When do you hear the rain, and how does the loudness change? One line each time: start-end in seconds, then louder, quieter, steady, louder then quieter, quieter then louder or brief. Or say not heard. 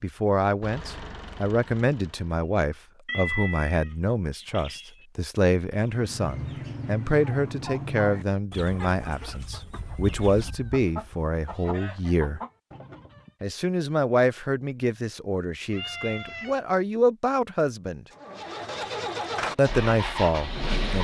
not heard.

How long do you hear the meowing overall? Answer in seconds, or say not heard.
5 s.